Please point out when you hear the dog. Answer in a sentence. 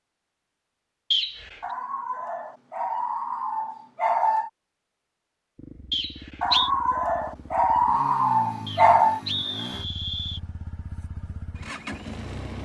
The dog can be heard from 1.6 to 4.5 s and from 6.4 to 9.2 s.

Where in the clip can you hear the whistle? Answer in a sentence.
The whistle can be heard from 1.1 to 1.6 s, from 5.9 to 6.7 s and from 8.7 to 10.4 s.